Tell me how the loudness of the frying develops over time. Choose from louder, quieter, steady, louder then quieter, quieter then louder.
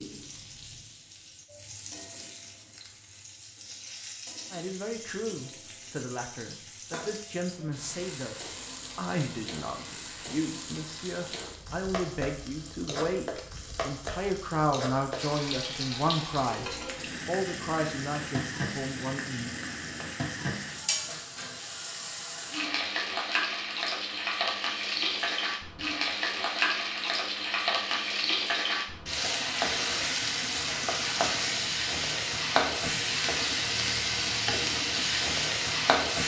louder.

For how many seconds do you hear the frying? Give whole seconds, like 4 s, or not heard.
36 s.